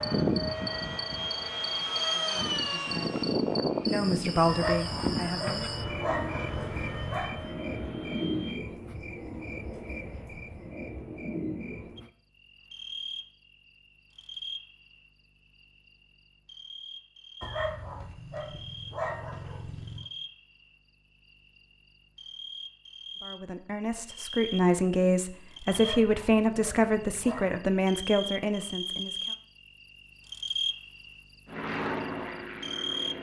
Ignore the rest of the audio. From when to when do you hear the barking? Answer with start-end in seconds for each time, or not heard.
4.5-7.3, 17.4-20.1, 25.7-27.6.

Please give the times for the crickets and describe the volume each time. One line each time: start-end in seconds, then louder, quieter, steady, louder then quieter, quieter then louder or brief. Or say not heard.
0.0-33.1 quieter then louder.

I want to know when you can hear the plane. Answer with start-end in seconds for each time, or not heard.
0.0-8.6, 31.4-33.1.